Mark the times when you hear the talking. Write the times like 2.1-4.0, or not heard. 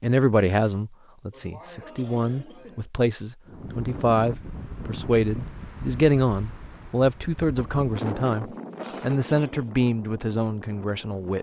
0.0-11.3.